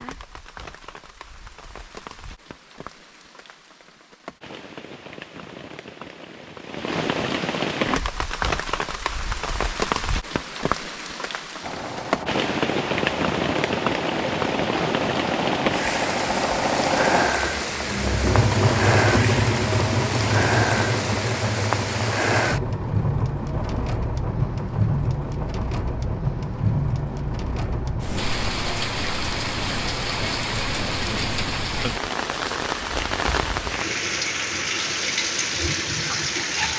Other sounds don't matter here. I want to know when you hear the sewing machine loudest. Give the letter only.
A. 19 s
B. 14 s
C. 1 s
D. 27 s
A.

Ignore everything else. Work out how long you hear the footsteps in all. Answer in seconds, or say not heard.
not heard.